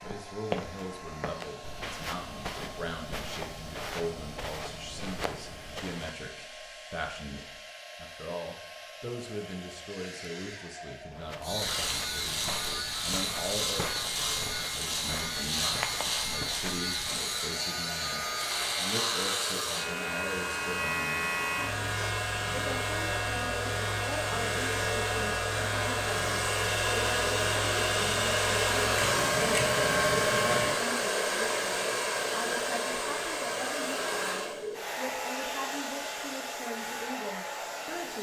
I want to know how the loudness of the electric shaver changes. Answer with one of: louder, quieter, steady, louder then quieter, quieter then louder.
steady.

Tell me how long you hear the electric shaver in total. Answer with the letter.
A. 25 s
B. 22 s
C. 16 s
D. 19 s
D.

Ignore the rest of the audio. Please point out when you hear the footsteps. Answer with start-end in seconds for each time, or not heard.
0.0-6.2, 11.1-17.3.